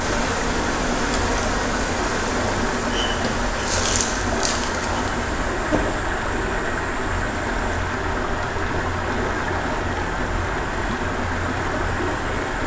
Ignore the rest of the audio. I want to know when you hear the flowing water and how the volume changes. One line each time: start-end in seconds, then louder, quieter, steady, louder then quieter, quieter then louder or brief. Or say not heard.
0.0-12.6 steady.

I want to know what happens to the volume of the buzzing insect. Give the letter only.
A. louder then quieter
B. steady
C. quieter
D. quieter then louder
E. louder
C.